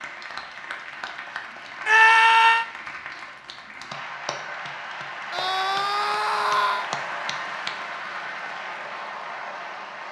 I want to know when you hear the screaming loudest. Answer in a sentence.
The volume of the screaming peaks at 2 seconds.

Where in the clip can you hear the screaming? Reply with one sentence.
The screaming can be heard from 1.9 to 2.6 s and from 5.3 to 6.9 s.